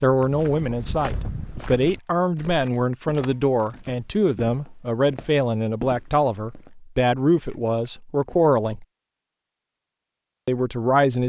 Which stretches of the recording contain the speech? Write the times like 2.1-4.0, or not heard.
0.0-8.8, 10.4-11.2.